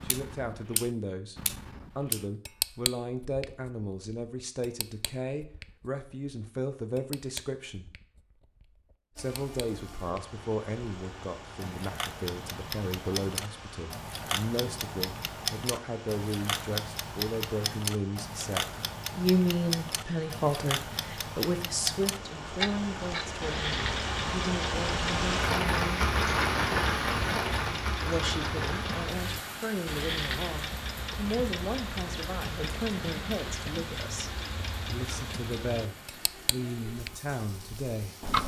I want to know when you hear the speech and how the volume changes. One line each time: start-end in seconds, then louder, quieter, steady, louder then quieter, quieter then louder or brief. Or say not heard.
0.0-7.9 steady
9.2-26.0 louder then quieter
28.1-38.1 steady.